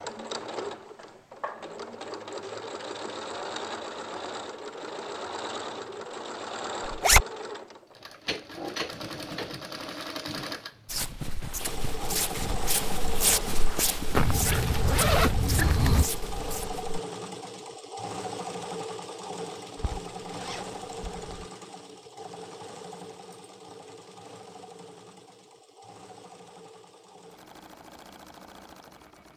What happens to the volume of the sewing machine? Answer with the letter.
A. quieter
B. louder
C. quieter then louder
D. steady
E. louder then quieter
A.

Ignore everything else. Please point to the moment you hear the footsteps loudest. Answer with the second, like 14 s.
13 s.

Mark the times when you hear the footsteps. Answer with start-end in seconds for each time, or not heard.
10.8-16.9.